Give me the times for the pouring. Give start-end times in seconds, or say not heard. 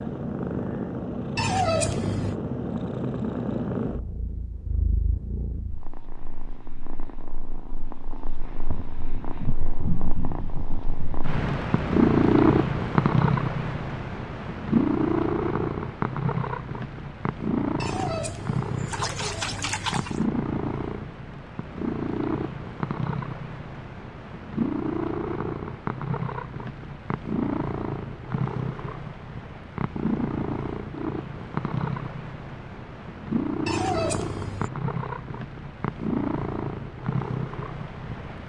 1.4-2.4, 17.8-20.2, 33.6-34.7.